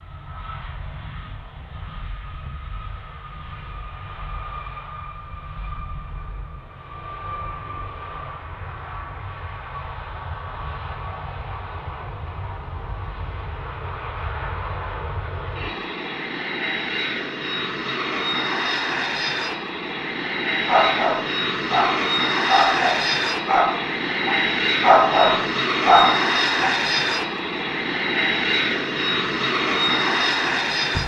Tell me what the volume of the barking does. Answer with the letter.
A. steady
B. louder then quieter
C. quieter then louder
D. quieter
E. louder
C.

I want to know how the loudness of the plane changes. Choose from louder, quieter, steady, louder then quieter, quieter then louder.
louder.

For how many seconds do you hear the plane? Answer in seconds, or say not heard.
31 s.